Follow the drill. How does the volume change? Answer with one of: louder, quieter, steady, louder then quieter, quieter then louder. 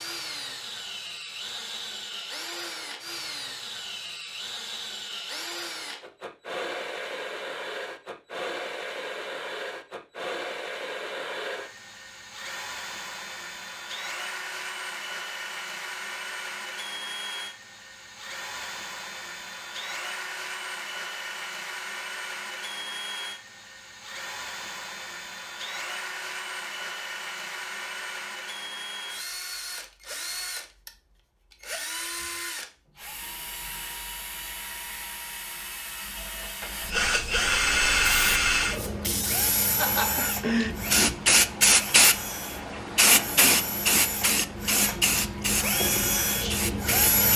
louder.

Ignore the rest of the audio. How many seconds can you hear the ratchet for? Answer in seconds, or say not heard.
not heard.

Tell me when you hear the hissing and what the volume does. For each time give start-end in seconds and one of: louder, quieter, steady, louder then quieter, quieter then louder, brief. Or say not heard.
37.9-47.1 louder then quieter.